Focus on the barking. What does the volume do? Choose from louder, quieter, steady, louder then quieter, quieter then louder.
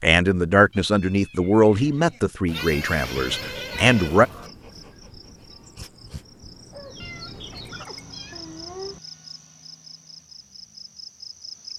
louder.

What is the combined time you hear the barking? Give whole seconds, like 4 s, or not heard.
5 s.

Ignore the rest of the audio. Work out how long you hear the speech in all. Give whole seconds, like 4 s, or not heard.
4 s.